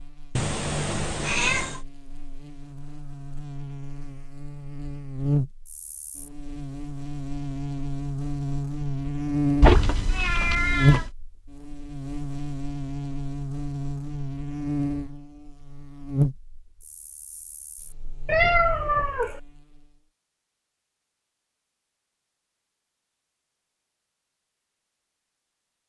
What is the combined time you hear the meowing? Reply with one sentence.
You can hear the meowing for 4 seconds altogether.